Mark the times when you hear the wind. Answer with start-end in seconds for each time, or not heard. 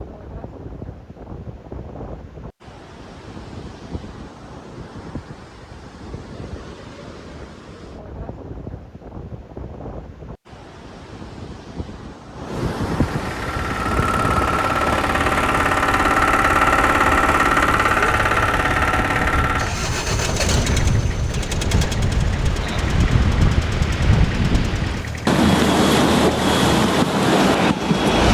0.0-28.3.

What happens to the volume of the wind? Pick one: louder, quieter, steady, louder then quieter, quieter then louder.
louder.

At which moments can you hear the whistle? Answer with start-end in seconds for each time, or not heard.
not heard.